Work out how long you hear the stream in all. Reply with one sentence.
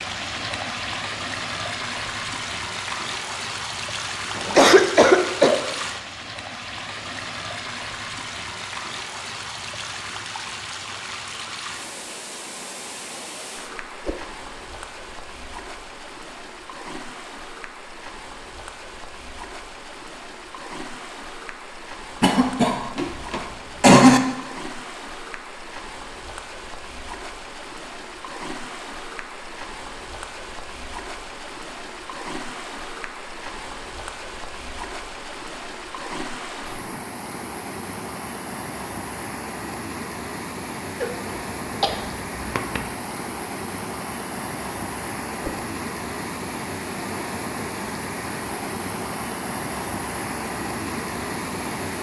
The stream can be heard for 52 seconds in total.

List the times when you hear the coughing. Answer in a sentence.
You can hear the coughing from 4.3 to 5.6 s, from 22.2 to 24.2 s and from 41.8 to 42.8 s.